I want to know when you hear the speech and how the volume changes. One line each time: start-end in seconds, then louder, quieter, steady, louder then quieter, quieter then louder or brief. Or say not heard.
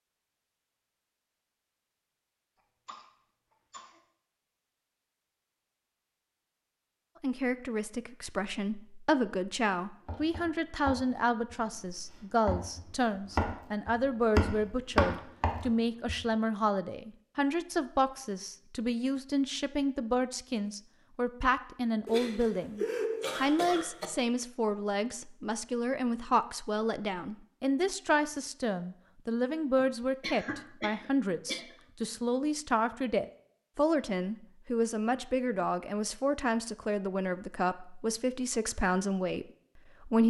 7.2-40.2 steady.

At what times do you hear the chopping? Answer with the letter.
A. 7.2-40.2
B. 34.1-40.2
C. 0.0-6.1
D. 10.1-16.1
D.